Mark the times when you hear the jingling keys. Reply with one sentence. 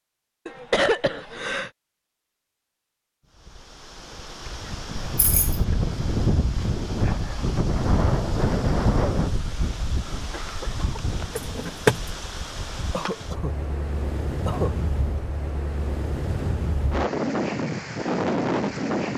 You can hear the jingling keys from 5.0 to 5.6 s and from 11.3 to 12.0 s.